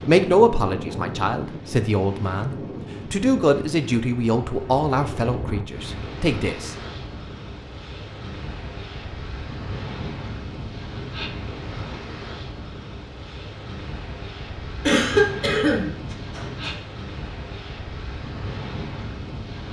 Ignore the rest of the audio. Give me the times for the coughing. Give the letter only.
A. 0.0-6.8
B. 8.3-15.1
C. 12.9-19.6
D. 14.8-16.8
D.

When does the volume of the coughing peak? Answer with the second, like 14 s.
15 s.